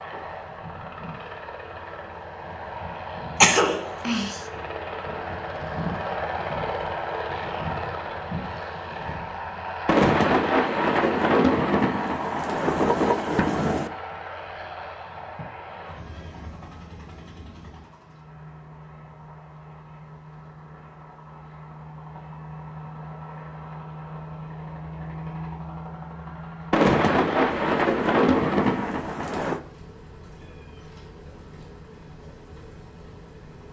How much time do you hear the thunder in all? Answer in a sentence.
You can hear the thunder for 7 seconds altogether.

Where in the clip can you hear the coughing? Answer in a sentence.
The coughing can be heard from 3.4 to 4.4 s.